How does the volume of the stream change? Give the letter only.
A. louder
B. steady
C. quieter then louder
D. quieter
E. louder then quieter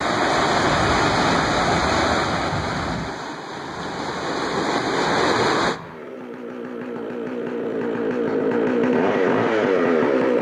C.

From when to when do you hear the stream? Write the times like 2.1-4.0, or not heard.
0.0-5.8.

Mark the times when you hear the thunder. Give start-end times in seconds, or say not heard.
0.5-3.1.